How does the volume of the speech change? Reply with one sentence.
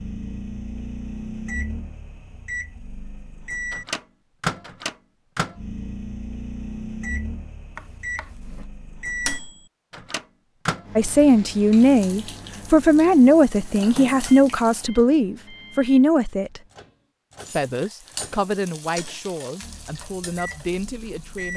The loudness of the speech goes down.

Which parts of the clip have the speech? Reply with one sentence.
You can hear the speech from 10.9 to 16.6 s and from 17.5 to 21.5 s.